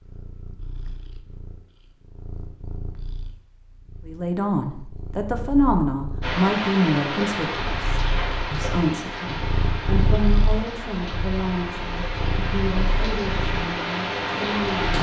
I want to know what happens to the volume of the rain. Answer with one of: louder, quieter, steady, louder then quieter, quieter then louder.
quieter then louder.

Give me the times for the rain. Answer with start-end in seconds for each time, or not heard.
6.2-14.9.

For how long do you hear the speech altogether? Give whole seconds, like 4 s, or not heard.
11 s.